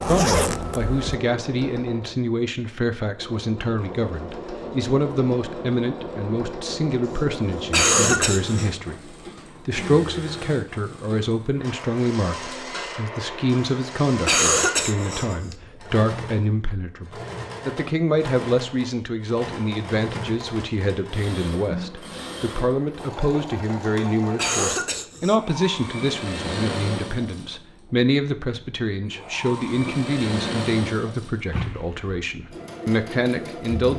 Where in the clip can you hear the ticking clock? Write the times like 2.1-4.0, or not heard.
not heard.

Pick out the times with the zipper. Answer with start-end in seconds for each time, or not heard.
0.0-1.1, 31.5-32.1.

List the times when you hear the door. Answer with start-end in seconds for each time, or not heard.
not heard.